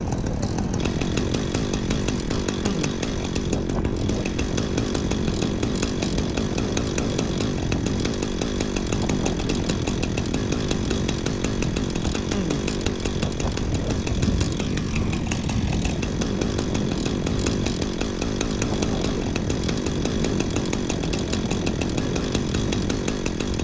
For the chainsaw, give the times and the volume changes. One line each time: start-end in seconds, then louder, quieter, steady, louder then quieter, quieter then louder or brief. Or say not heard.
0.0-23.5 steady.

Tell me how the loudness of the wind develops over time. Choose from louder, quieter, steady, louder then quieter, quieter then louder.
steady.